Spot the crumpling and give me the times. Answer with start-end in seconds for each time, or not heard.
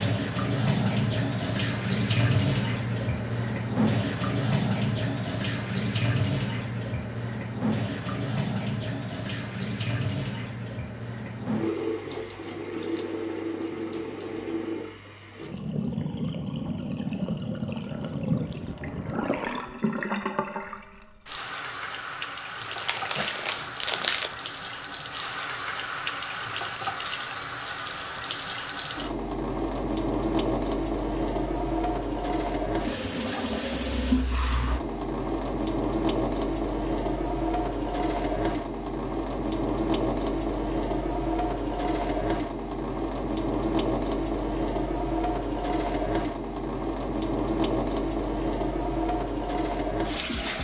22.6-24.3.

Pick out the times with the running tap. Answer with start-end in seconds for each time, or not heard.
0.0-50.5.